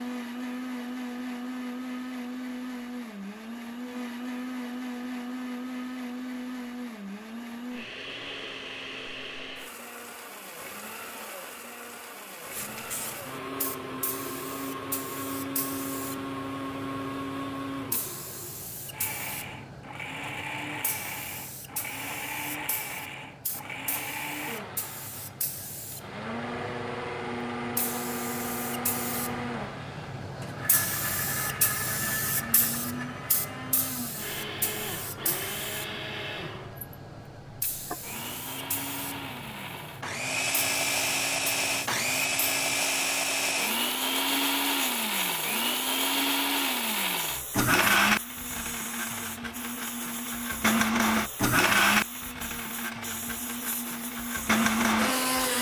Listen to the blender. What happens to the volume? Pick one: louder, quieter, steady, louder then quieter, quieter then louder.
louder.